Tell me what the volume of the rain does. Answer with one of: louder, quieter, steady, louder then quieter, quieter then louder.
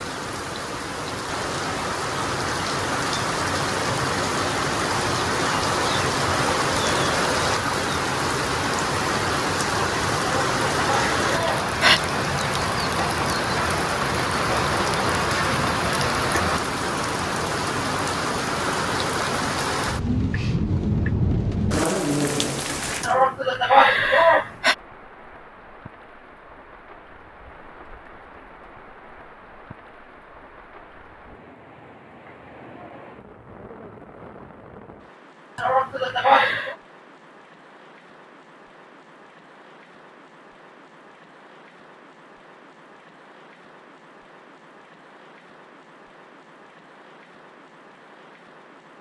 quieter.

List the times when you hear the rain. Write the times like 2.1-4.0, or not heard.
0.0-48.9.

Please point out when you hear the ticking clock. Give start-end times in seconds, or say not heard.
not heard.